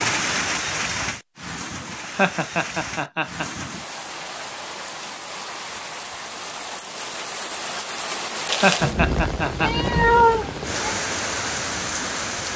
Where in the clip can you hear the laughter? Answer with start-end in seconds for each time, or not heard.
1.9-3.6, 8.4-9.7.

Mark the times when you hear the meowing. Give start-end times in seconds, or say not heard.
9.6-10.8.